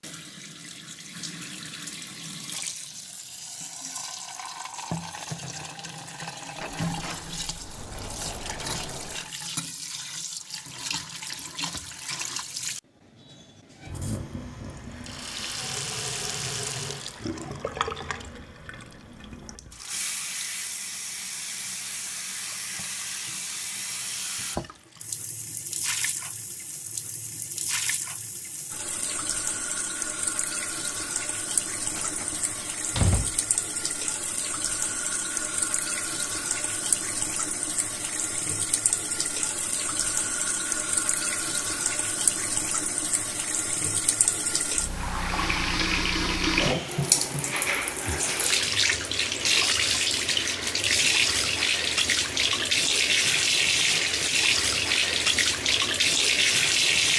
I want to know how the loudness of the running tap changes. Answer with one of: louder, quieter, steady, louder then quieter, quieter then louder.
louder.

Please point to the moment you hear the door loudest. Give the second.
33 s.